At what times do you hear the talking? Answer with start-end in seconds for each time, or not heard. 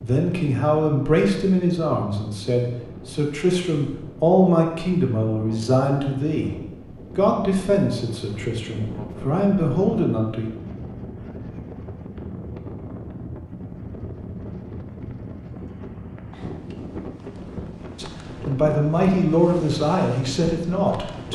0.0-6.5, 7.2-10.5, 17.9-21.3.